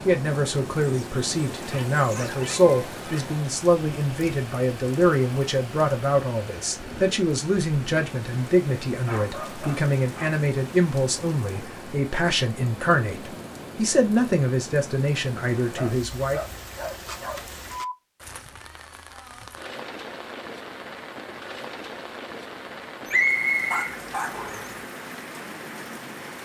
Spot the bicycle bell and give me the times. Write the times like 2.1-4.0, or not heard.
not heard.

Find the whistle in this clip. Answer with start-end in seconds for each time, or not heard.
23.1-24.7.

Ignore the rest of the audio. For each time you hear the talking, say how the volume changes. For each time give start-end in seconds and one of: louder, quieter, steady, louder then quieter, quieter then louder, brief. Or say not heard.
0.1-16.4 steady.